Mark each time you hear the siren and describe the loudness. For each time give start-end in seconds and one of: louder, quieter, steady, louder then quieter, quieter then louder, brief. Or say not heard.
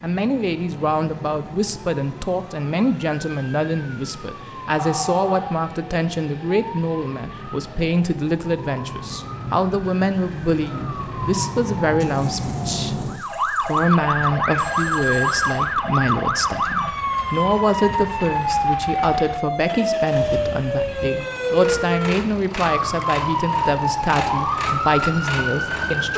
0.2-26.1 louder.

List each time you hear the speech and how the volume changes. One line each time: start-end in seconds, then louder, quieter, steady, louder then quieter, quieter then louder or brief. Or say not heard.
0.0-26.1 steady.